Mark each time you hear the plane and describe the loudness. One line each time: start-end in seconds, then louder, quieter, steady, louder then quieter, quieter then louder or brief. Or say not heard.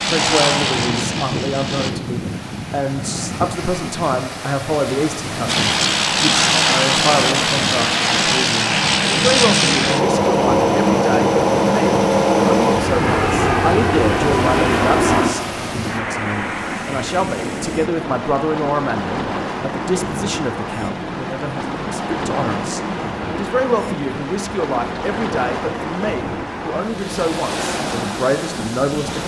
0.0-1.9 brief
5.5-29.2 quieter.